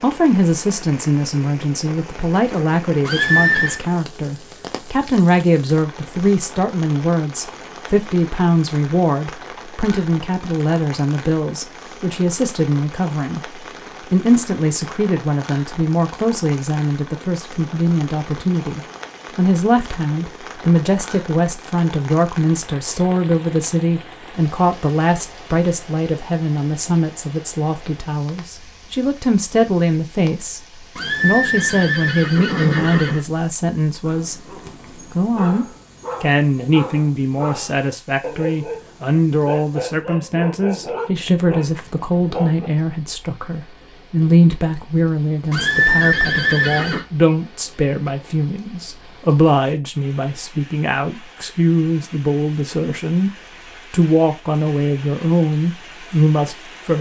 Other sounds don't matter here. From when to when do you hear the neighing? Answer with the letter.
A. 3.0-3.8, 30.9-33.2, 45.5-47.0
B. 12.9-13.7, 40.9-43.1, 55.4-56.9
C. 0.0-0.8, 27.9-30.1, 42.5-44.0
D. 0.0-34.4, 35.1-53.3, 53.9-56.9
A.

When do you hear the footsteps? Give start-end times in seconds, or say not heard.
not heard.